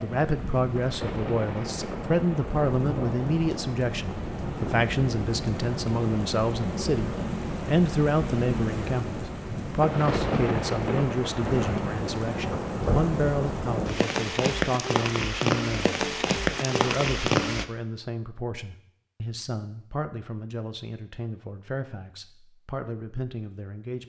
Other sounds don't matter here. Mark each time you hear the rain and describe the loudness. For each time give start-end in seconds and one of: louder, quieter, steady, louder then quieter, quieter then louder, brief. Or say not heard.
0.0-17.6 louder.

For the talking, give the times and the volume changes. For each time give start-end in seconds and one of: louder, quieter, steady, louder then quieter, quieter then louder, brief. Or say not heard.
0.0-24.0 quieter.